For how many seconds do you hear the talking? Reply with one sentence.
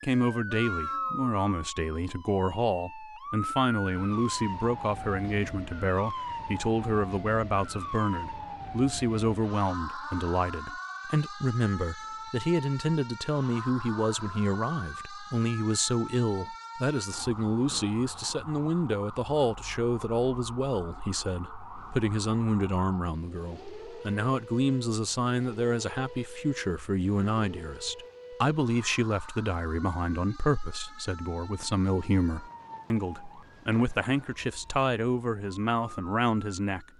You can hear the talking for 37 seconds altogether.